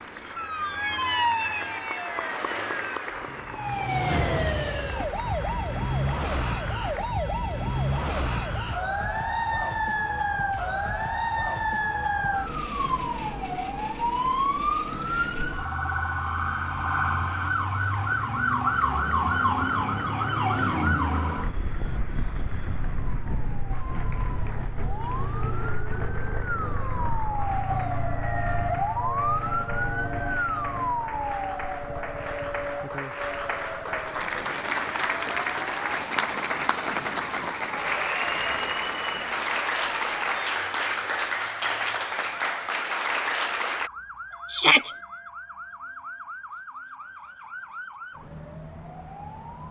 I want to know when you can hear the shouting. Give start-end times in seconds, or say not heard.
44.5-45.0.